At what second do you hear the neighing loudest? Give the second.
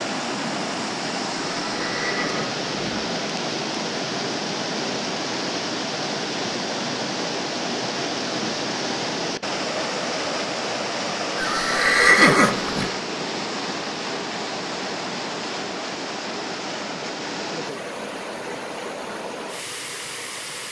12 s.